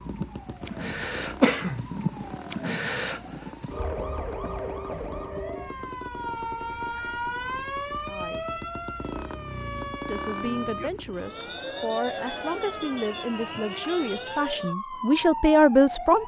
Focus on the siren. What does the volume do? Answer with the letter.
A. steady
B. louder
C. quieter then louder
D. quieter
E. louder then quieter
A.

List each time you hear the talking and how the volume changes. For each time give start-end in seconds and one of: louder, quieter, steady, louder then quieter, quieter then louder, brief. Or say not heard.
8.1-8.6 brief
10.1-16.2 louder.